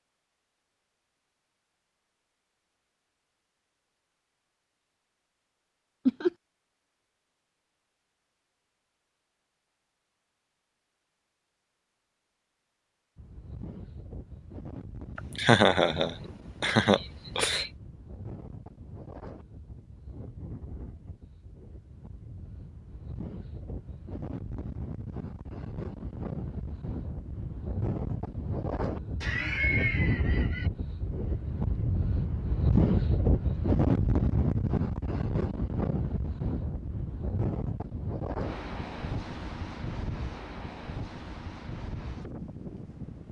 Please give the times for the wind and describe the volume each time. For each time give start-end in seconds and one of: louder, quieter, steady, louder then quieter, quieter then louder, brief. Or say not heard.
13.2-43.2 louder then quieter.